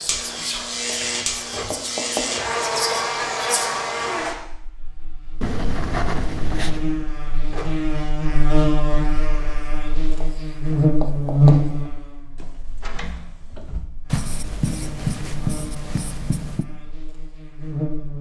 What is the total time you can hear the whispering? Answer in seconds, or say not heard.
4 s.